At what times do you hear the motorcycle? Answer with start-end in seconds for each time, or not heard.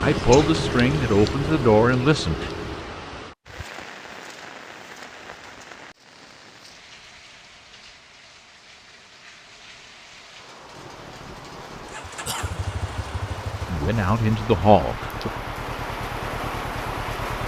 0.0-3.0, 10.6-17.4.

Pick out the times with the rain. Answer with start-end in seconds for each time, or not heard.
0.0-17.4.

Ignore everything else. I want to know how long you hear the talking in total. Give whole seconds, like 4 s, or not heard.
4 s.